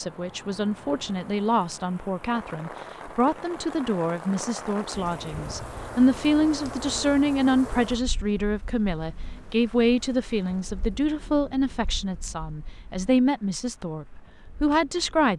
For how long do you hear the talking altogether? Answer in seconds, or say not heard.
15 s.